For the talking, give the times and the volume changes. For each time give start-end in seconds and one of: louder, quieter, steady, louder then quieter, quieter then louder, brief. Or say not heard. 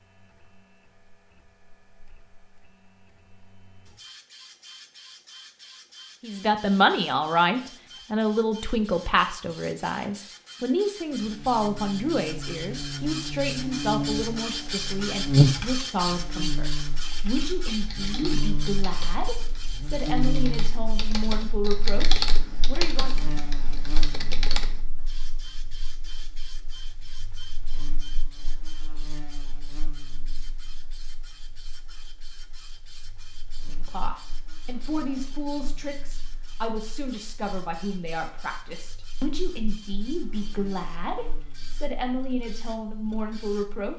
6.2-23.1 quieter
33.6-43.9 steady.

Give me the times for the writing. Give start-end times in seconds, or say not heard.
not heard.